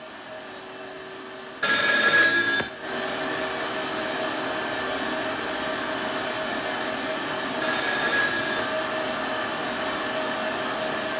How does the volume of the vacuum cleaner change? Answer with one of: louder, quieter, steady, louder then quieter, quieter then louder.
louder.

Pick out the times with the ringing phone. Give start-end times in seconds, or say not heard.
1.6-2.7, 7.6-8.7.